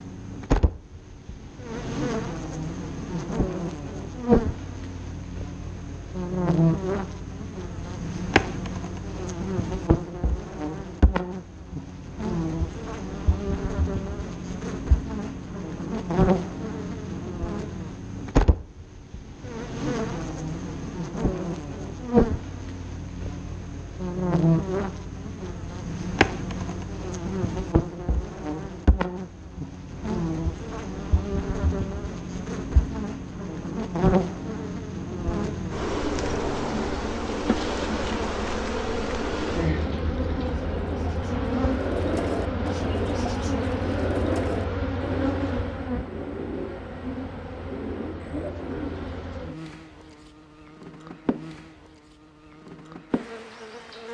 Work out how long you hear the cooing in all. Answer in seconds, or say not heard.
10 s.